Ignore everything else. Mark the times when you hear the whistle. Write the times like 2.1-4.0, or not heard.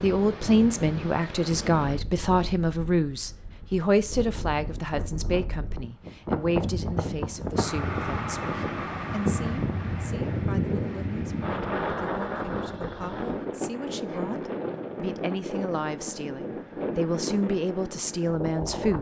not heard.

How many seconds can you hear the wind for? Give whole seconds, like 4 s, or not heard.
19 s.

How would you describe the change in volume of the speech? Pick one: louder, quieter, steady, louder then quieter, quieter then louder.
quieter then louder.